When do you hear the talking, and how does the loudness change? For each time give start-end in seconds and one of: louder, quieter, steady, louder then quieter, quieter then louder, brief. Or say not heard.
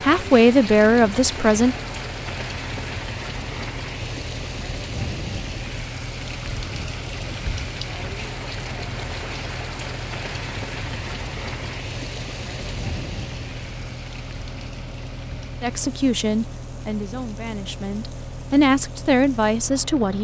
0.0-1.8 brief
15.6-20.2 quieter then louder.